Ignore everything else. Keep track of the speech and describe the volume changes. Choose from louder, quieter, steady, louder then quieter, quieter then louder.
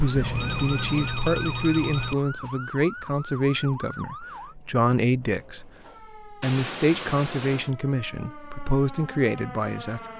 steady.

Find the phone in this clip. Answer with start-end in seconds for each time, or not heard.
0.1-2.1, 6.4-7.7.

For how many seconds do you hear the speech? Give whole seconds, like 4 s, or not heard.
10 s.